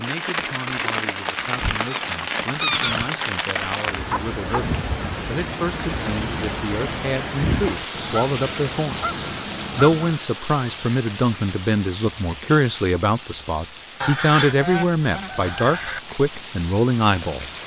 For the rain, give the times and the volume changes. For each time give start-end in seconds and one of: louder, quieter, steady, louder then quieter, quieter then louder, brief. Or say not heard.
0.0-17.6 quieter.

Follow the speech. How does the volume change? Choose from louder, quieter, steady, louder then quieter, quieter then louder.
louder.